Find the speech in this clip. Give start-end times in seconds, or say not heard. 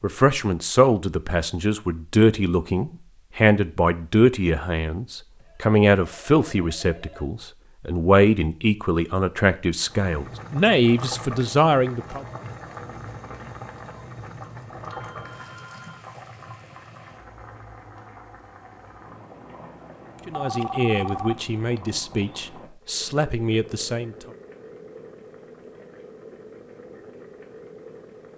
0.0-12.2, 20.2-24.3.